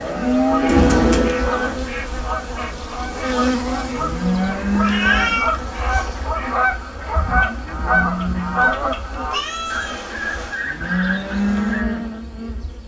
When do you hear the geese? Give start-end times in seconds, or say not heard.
0.5-11.8.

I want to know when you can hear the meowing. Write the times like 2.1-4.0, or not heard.
0.7-1.3, 4.3-6.3, 9.3-10.5.